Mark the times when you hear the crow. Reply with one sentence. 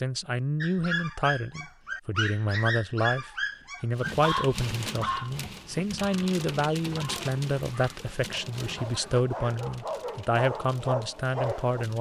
The crow can't be heard in this clip.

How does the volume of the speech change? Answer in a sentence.
The loudness of the speech stays about the same.